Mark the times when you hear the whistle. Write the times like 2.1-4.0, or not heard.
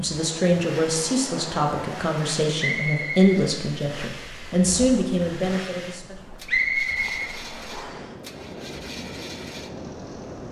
2.5-3.4, 6.5-8.1.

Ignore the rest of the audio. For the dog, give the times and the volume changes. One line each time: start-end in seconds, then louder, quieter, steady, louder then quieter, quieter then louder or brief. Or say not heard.
not heard.